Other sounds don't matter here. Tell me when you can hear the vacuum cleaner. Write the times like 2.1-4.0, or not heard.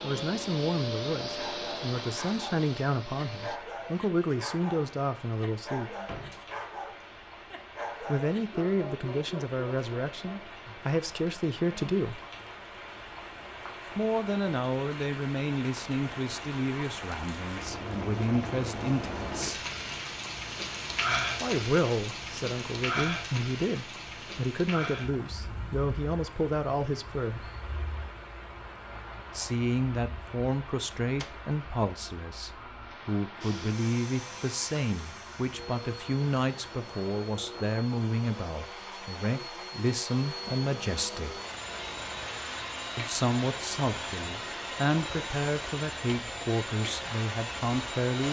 0.0-3.6, 33.4-48.2.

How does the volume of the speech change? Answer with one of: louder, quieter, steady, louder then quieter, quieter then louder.
steady.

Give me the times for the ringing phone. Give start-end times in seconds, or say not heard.
not heard.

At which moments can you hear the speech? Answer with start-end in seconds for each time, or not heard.
0.0-6.0, 8.0-12.2, 13.9-19.6, 21.4-27.5, 29.4-41.4, 43.0-48.2.